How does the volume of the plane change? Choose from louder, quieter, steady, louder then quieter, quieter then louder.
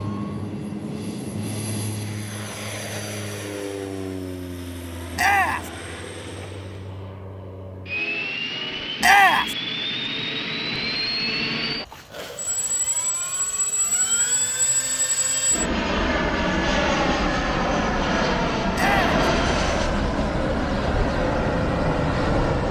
louder.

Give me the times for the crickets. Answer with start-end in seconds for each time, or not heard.
not heard.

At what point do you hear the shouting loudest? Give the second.
9 s.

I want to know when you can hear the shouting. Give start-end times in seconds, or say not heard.
5.2-5.7, 9.0-9.6, 18.8-19.2.